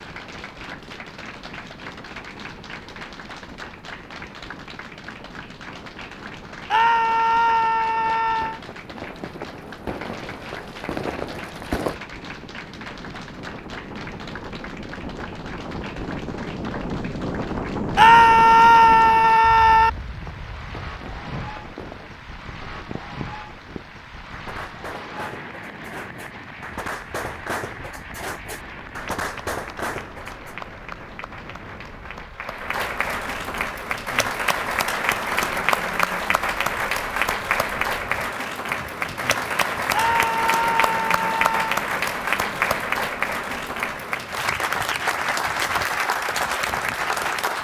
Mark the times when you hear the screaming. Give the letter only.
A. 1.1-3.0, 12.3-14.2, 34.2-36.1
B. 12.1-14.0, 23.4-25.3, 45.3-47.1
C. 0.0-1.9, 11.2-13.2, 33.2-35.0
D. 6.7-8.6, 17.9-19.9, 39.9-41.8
D.